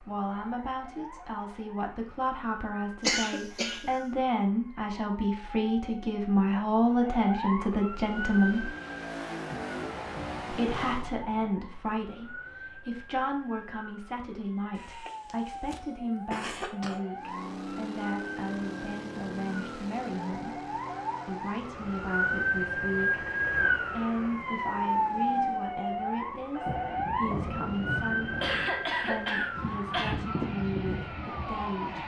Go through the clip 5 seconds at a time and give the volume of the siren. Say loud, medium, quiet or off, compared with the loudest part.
quiet, medium, quiet, quiet, loud, loud, loud.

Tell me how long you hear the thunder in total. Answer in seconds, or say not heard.
4 s.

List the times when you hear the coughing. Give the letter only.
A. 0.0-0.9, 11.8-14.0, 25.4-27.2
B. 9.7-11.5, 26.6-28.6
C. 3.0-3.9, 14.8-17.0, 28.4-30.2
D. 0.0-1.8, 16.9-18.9
C.